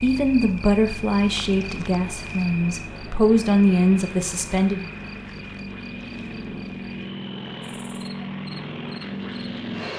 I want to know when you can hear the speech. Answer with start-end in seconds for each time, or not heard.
0.0-4.8.